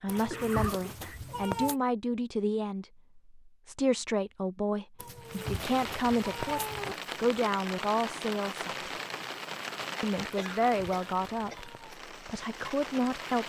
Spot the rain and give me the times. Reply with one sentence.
The rain can be heard from 5.2 to 13.4 s.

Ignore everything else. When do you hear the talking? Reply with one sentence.
You can hear the talking from 0.0 to 8.9 s and from 10.0 to 13.4 s.